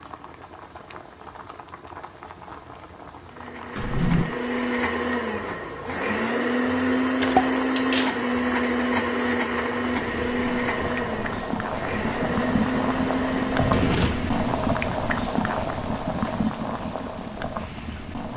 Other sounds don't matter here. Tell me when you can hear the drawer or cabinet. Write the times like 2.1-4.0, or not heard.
3.8-4.2, 7.2-8.2, 13.6-14.2.